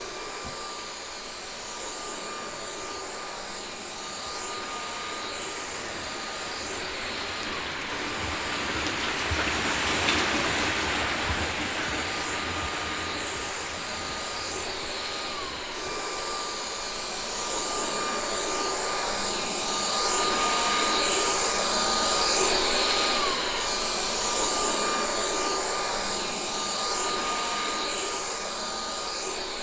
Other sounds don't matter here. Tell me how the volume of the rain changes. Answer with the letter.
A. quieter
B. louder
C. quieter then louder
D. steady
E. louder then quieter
E.